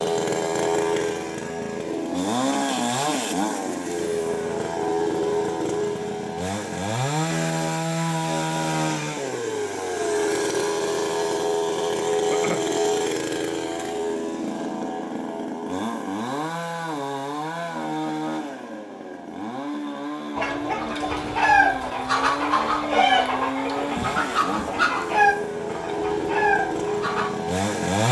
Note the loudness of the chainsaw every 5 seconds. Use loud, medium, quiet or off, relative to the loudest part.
loud, loud, loud, medium, medium, loud.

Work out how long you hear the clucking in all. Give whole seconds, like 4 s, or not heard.
7 s.